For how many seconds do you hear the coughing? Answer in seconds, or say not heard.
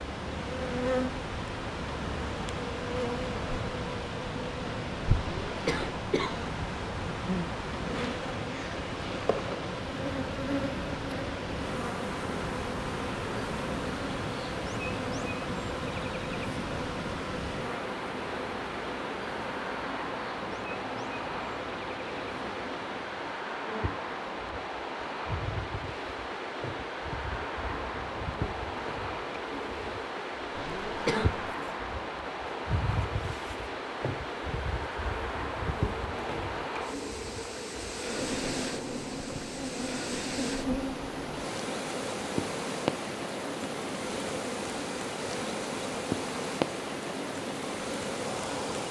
2 s.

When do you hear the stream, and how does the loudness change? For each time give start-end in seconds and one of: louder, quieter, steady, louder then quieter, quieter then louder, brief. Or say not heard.
0.0-48.8 steady.